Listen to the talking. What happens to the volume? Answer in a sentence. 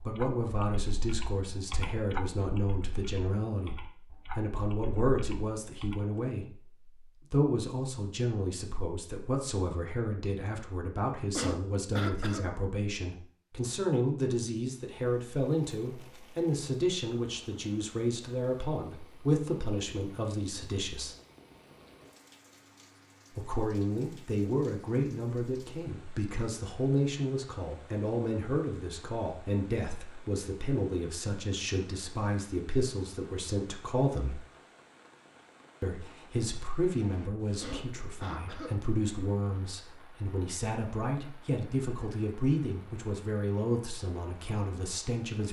The loudness of the talking stays about the same.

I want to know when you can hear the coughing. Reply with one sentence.
You can hear the coughing from 11.3 to 12.4 s and from 37.6 to 38.8 s.